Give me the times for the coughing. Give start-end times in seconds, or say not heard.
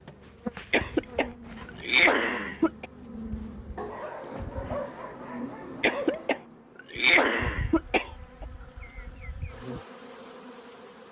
0.7-2.9, 5.8-8.4.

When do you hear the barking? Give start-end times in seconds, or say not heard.
3.8-6.2.